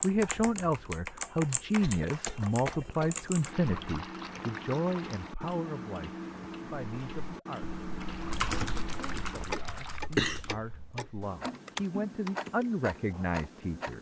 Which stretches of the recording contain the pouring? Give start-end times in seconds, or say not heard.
3.5-5.3, 8.0-10.0.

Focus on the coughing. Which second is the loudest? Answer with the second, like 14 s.
10 s.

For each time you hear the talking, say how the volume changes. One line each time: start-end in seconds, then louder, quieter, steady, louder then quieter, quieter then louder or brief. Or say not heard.
0.0-13.9 quieter then louder.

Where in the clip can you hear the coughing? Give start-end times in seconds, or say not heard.
1.8-3.2, 9.9-10.8.